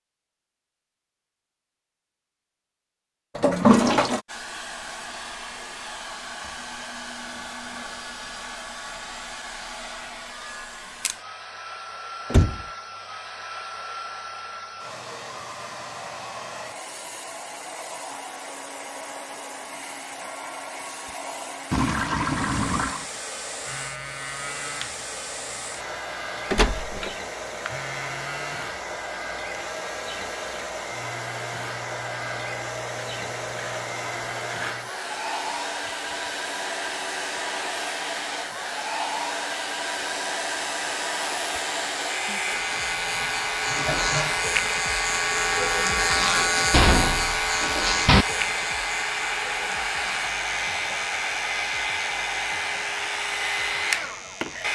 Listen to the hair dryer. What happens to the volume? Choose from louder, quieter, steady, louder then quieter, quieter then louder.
louder.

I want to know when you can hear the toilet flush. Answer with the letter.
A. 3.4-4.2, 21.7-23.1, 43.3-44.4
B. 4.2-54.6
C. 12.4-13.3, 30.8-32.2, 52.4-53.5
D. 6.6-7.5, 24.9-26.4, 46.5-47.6
A.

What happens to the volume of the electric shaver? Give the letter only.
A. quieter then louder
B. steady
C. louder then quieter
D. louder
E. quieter
C.